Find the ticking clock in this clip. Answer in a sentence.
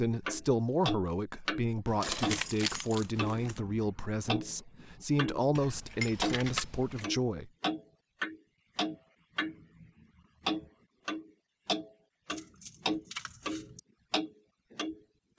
You can hear the ticking clock from 0.2 to 5.5 s, from 6.2 to 9.8 s and from 10.4 to 15.3 s.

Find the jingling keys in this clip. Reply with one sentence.
The jingling keys can be heard from 1.9 to 3.6 s, from 5.5 to 7.1 s and from 12.3 to 13.8 s.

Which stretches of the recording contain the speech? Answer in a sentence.
You can hear the speech from 0.0 to 7.5 s.